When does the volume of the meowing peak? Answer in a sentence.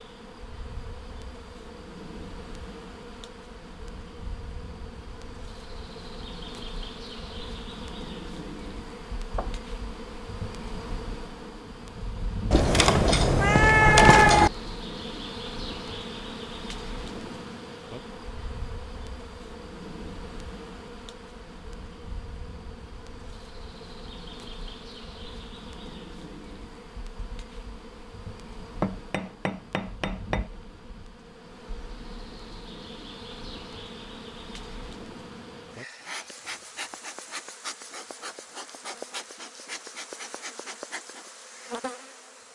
The loudest moment of the meowing is at 14 seconds.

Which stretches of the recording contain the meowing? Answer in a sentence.
You can hear the meowing from 12.5 to 14.5 s.